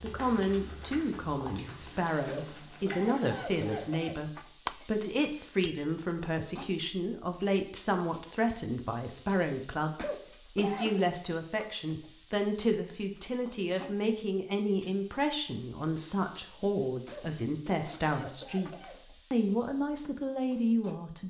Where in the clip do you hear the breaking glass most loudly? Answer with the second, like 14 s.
5 s.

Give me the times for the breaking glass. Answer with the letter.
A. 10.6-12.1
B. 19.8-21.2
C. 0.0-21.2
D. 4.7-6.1
D.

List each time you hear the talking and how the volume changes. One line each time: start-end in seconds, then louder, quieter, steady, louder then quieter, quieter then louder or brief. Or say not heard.
0.0-21.2 steady.